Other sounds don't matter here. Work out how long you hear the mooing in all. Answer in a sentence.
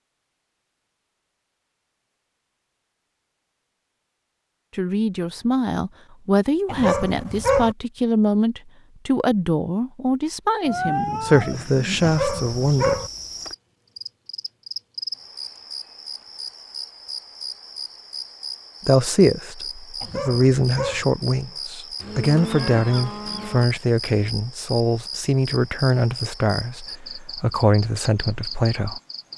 The mooing can be heard for 3 seconds in total.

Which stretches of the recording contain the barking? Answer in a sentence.
The barking can be heard from 6.7 to 7.8 s, from 12.0 to 13.1 s and from 20.0 to 21.1 s.